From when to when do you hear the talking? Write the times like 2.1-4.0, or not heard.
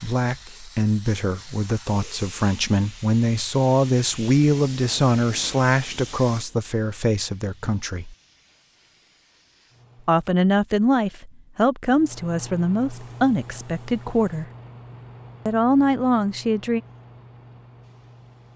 0.0-8.2, 10.1-14.4, 15.4-16.8.